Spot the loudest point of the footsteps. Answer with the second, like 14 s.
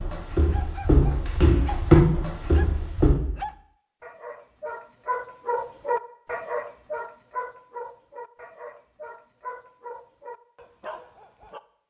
2 s.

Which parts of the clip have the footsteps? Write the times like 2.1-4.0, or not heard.
0.0-3.1.